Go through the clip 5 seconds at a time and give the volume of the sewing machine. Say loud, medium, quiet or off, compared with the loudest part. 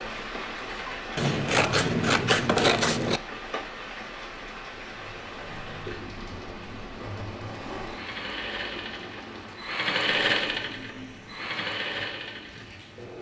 off, medium, loud.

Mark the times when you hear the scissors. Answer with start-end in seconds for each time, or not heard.
1.1-3.2.